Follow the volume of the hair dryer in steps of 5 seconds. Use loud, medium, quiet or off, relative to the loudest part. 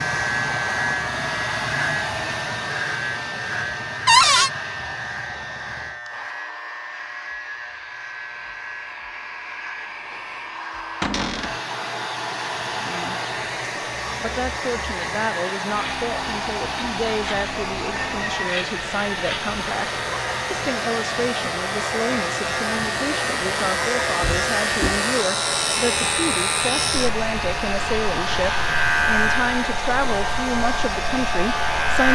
loud, medium, loud, loud, loud, loud, loud.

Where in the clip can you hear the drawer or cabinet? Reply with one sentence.
The drawer or cabinet can be heard from 4.0 to 4.5 s, from 11.0 to 11.6 s and from 24.2 to 25.1 s.